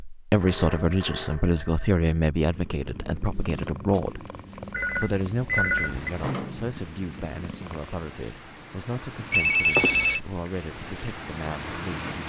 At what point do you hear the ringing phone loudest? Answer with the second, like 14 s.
10 s.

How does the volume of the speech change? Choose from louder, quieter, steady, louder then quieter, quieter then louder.
quieter.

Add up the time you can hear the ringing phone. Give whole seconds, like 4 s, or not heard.
4 s.